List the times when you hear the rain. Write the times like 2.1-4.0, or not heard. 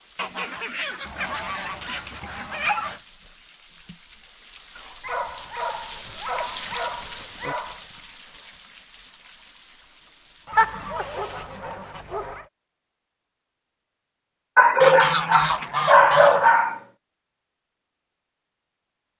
0.0-11.1.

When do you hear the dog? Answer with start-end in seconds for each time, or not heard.
1.1-3.0, 5.0-7.8, 10.5-12.4, 14.6-16.8.